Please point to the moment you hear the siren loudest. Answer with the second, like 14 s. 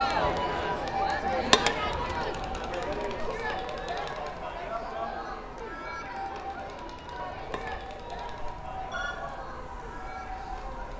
1 s.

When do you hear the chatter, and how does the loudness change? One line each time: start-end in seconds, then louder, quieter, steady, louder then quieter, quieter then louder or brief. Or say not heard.
0.0-10.9 quieter.